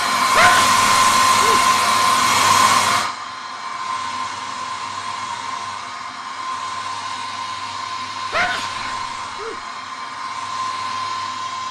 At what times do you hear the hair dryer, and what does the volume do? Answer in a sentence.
The hair dryer can be heard from 0.0 to 11.6 s, getting quieter.